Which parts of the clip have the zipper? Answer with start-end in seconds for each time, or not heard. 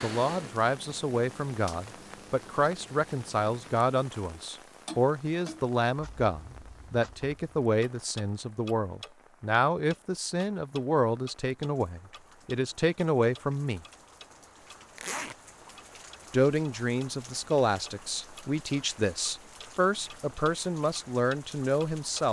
14.9-15.3.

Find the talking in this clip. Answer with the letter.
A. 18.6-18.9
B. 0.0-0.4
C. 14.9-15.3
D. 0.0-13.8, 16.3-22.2
D.